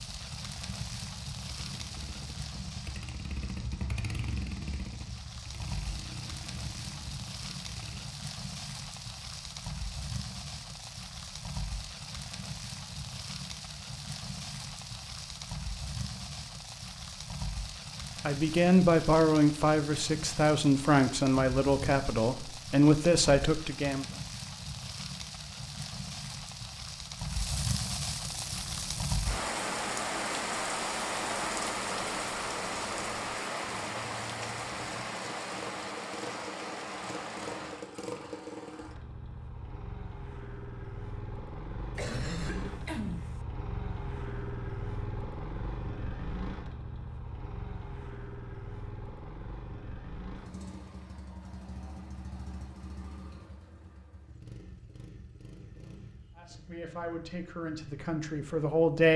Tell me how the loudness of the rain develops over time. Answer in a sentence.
The loudness of the rain goes up.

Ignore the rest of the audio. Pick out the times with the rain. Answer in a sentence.
You can hear the rain from 0.0 to 37.9 s.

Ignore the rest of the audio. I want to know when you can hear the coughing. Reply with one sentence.
You can hear the coughing from 42.0 to 43.4 s.